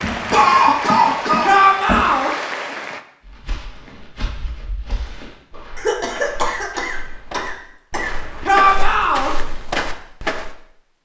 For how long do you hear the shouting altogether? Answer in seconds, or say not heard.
2 s.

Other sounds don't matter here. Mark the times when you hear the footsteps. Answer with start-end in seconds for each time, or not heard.
3.2-10.6.